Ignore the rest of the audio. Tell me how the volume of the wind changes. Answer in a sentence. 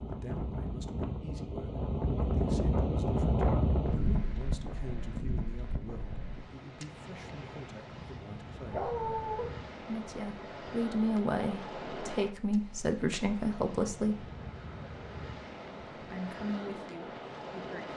The loudness of the wind goes down.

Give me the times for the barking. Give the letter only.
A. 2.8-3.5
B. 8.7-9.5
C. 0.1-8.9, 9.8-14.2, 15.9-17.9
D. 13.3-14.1
B.